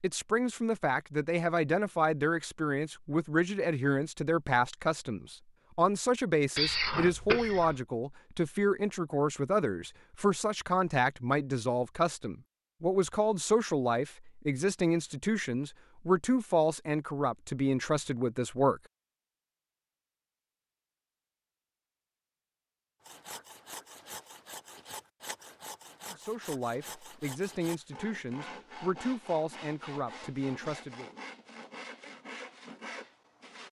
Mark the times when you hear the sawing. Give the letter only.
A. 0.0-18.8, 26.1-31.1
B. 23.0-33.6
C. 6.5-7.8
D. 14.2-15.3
B.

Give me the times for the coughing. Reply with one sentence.
You can hear the coughing from 6.5 to 7.8 s.